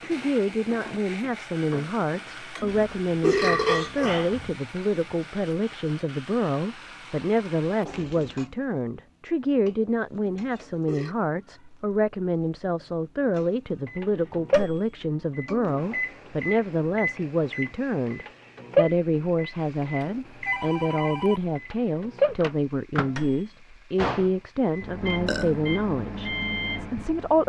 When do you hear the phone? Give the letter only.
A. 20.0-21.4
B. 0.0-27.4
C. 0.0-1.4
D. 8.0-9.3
A.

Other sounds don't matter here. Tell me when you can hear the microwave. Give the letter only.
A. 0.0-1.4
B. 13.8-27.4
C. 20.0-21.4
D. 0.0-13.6
B.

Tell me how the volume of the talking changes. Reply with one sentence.
The loudness of the talking stays about the same.